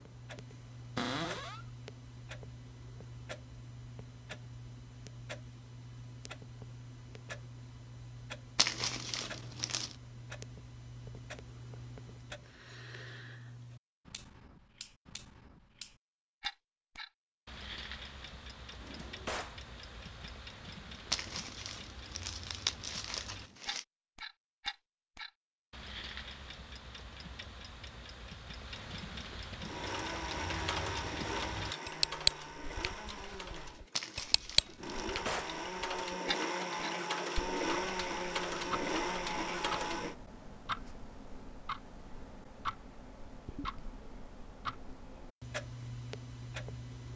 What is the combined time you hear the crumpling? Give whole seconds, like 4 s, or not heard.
5 s.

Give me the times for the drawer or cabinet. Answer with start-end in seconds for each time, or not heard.
0.9-1.6, 18.8-19.6, 34.8-35.5.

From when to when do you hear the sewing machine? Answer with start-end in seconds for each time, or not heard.
29.6-40.1.